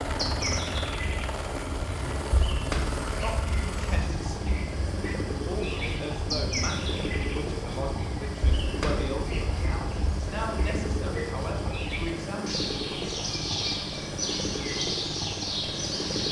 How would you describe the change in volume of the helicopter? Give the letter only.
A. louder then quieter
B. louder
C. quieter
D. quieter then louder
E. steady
E.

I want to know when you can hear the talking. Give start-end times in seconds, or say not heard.
3.2-12.6.